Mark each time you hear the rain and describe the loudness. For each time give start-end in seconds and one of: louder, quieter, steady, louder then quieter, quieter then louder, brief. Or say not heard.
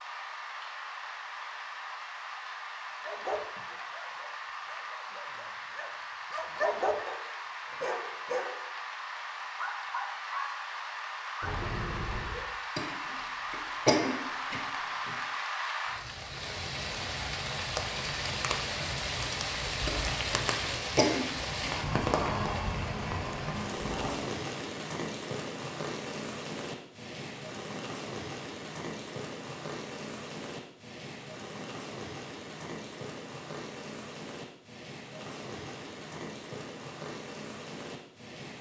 0.0-38.5 louder then quieter.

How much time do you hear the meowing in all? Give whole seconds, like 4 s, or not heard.
3 s.